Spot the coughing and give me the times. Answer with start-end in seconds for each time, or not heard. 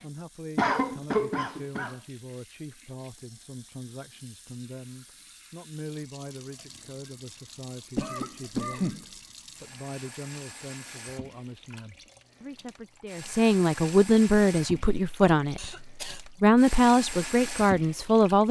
0.6-1.9, 8.0-9.1, 15.6-16.2.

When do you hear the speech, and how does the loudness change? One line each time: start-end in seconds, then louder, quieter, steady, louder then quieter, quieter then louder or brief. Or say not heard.
0.0-18.4 louder.